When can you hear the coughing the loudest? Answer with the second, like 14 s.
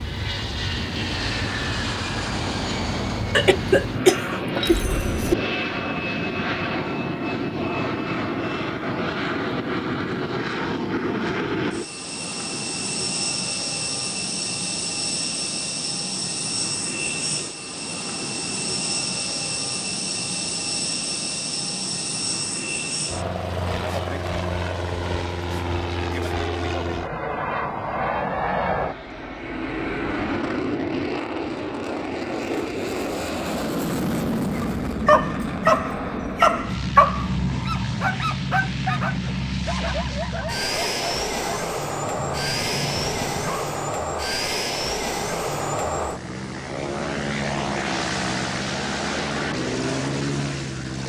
4 s.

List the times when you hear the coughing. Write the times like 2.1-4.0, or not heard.
3.3-5.3.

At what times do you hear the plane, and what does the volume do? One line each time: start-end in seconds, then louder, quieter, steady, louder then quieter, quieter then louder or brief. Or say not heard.
0.0-51.0 steady.